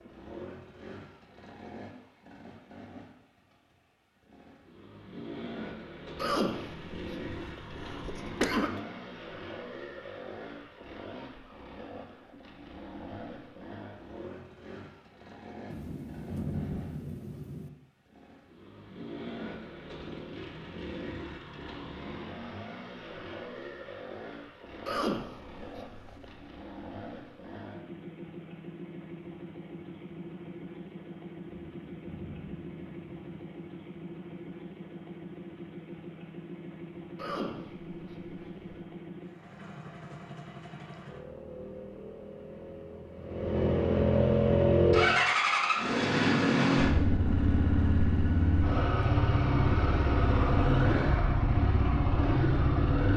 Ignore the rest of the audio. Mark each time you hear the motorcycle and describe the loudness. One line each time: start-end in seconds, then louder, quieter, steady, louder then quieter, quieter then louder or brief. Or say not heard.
0.0-53.1 louder.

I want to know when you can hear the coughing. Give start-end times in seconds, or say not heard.
6.2-8.8, 24.9-26.4, 37.1-38.8.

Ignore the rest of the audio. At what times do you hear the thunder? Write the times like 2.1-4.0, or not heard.
15.7-17.7, 31.4-33.4.